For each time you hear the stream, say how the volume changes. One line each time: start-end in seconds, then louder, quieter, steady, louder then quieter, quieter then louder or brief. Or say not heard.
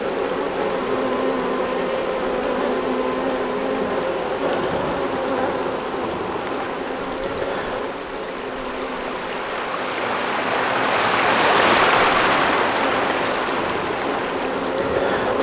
0.0-15.3 louder.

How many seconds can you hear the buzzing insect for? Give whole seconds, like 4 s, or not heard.
15 s.